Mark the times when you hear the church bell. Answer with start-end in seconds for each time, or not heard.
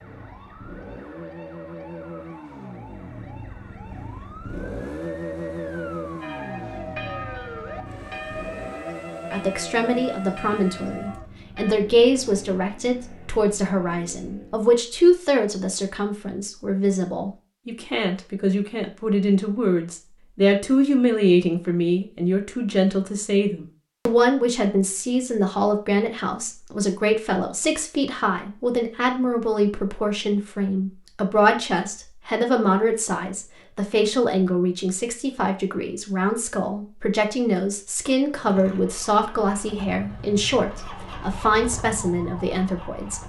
6.2-11.8.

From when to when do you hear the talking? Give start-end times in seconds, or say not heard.
9.3-43.2.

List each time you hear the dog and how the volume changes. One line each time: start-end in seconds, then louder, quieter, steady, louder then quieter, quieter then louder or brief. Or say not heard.
not heard.